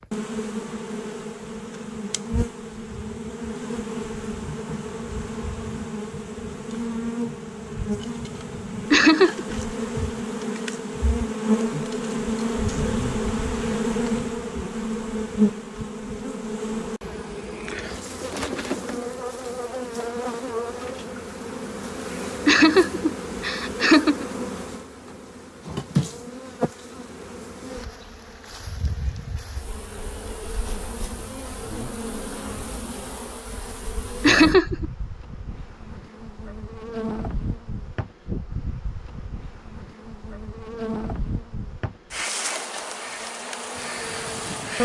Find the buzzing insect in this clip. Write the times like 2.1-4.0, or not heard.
0.0-44.7.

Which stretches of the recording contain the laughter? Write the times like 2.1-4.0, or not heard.
8.9-9.4, 22.4-24.2, 34.2-34.9.